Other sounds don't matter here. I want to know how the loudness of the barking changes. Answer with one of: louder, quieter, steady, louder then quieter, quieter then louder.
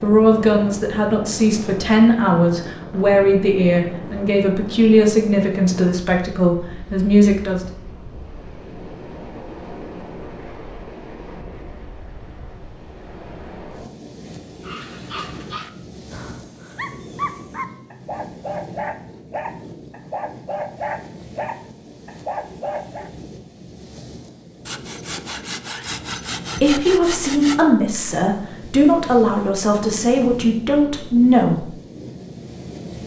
louder.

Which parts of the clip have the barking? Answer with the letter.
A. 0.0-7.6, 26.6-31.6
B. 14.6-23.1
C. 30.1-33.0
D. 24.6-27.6
B.